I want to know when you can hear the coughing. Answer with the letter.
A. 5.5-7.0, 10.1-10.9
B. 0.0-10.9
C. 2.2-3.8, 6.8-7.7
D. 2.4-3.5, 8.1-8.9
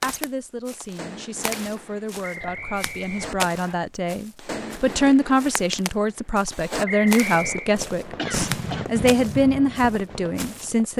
D.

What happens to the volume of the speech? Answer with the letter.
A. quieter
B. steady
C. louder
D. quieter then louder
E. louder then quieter
C.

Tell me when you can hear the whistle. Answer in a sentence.
You can hear the whistle from 2.2 to 3.8 s and from 6.8 to 7.7 s.